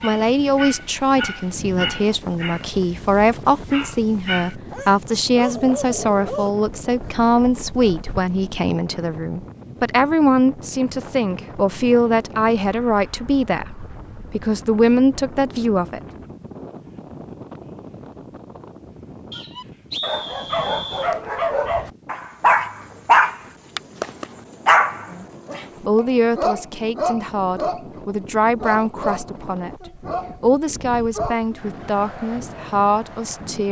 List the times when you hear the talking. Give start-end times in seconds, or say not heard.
0.0-16.0, 25.1-33.6.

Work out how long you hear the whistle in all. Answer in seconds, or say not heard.
2 s.